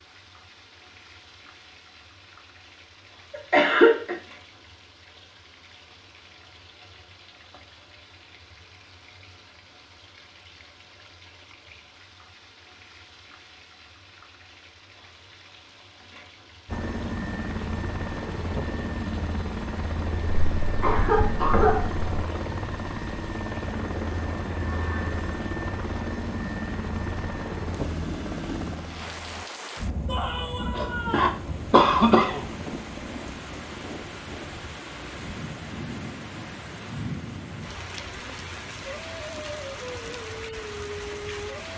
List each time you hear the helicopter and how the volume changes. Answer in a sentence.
The helicopter can be heard from 16.6 to 29.4 s, at a steady volume.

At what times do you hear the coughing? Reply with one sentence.
The coughing can be heard from 3.3 to 4.2 s, from 20.2 to 22.1 s and from 30.8 to 32.4 s.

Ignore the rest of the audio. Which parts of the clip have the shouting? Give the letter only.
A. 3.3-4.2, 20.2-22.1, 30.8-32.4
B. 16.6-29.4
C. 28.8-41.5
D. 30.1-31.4
D.